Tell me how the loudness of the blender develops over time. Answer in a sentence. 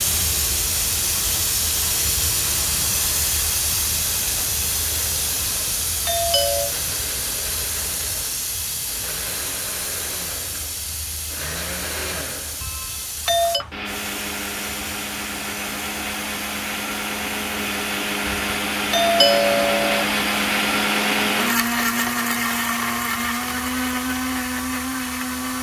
The loudness of the blender goes up.